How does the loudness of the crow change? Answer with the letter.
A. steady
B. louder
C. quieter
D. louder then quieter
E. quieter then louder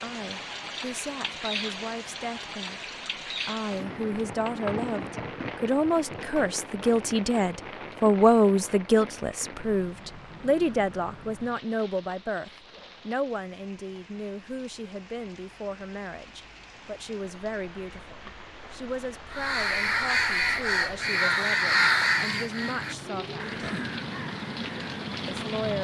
C.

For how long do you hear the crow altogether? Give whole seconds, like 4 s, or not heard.
6 s.